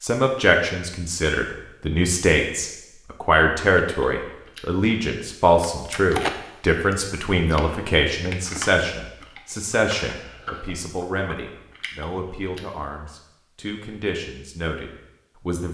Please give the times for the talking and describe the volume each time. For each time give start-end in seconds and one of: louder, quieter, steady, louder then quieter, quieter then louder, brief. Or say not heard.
0.0-15.6 quieter.